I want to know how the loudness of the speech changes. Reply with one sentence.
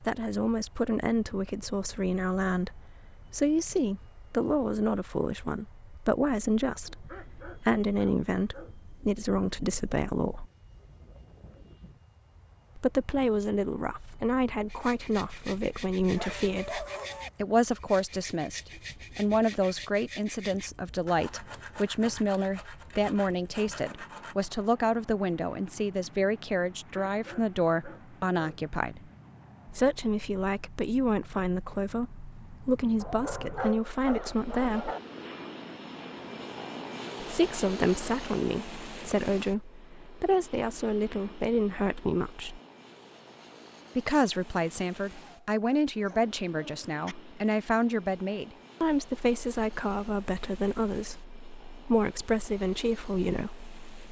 The volume of the speech stays about the same.